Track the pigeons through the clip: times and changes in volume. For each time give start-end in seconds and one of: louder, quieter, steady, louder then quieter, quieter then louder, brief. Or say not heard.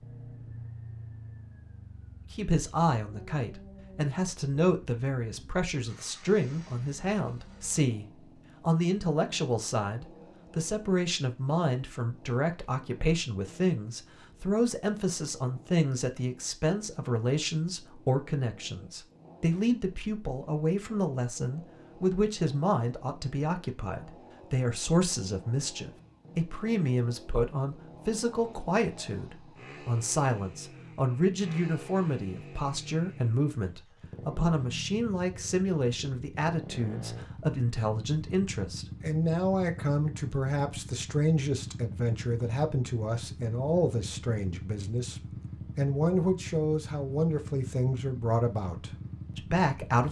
not heard.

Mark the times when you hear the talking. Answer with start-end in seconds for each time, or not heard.
2.3-50.0.